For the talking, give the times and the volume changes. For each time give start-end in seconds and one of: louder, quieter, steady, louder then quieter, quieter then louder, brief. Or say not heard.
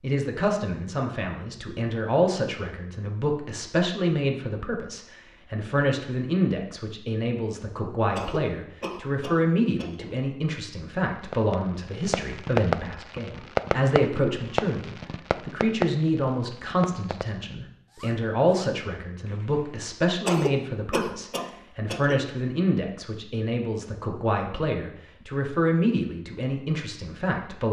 0.0-27.6 steady.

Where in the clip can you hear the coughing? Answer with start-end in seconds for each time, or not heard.
8.1-10.1, 20.2-22.2.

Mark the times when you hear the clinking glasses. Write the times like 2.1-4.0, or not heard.
not heard.